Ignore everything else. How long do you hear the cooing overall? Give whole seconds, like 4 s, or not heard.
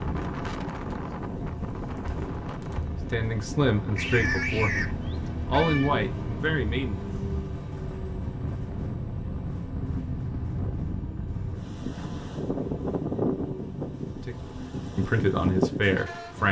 not heard.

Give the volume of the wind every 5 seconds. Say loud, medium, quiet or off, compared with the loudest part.
medium, medium, loud, loud.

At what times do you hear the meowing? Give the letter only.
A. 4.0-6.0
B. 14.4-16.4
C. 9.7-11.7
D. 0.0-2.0
A.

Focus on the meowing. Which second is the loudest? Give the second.
4 s.